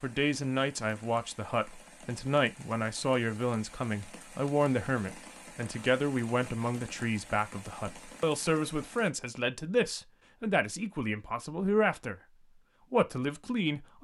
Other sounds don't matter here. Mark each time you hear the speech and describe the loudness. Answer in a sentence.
The speech can be heard from 0.0 to 12.2 s, at a steady volume; and briefly from 12.9 to 13.9 s.